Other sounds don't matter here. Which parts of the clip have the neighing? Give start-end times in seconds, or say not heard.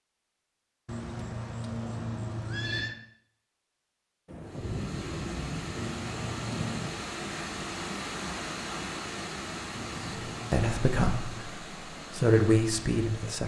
0.8-3.0, 5.8-7.0, 9.7-11.5.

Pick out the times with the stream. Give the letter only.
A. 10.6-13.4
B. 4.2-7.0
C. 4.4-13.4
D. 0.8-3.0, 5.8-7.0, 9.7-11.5
C.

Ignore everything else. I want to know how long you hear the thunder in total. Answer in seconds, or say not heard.
3 s.